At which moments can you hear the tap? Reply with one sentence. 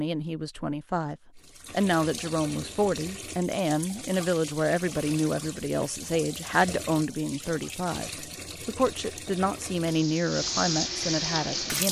You can hear the tap from 1.4 to 11.8 s.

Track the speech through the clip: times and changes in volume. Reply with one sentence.
You can hear the speech from 0.0 to 11.8 s, at a steady volume.